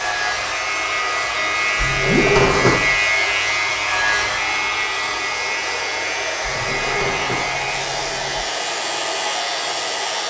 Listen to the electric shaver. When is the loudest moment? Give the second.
3 s.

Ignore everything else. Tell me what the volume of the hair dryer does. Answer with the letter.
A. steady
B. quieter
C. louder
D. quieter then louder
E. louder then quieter
A.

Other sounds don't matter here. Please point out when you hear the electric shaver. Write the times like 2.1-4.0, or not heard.
0.0-10.2.